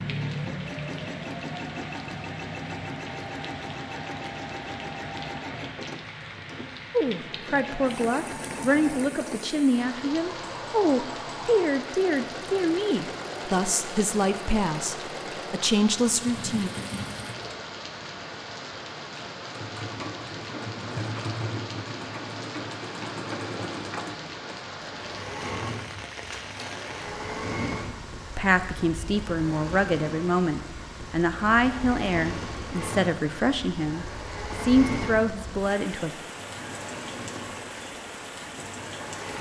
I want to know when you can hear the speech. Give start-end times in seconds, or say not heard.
6.9-16.7, 28.4-36.1.